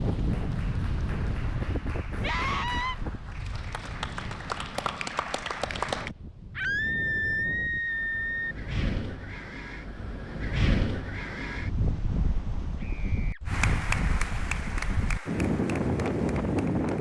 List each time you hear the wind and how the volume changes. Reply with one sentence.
The wind can be heard from 0.0 to 16.9 s, getting quieter then louder.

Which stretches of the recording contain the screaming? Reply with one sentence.
The screaming can be heard from 2.2 to 3.0 s, from 6.5 to 8.6 s and from 12.8 to 13.4 s.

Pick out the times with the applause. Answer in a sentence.
You can hear the applause from 0.1 to 6.1 s and from 13.4 to 16.9 s.